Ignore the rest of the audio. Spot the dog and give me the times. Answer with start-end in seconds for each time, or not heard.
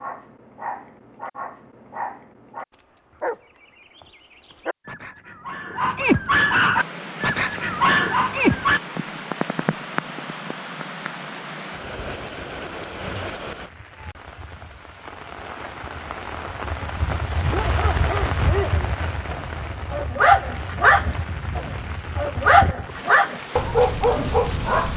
0.0-8.8, 17.4-24.9.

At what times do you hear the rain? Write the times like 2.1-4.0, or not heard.
6.7-24.9.